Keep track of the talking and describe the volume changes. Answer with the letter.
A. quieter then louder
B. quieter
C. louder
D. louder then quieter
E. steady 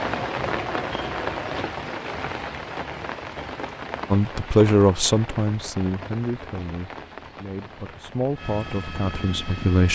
A.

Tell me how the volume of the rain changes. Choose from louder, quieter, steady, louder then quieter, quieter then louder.
quieter.